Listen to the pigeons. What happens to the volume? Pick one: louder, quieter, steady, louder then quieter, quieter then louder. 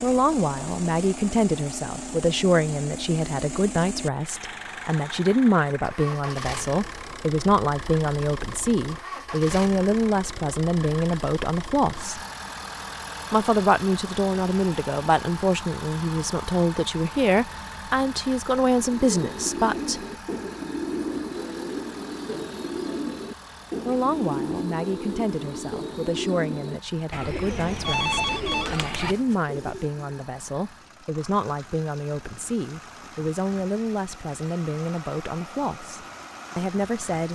steady.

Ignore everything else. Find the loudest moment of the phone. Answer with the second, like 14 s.
28 s.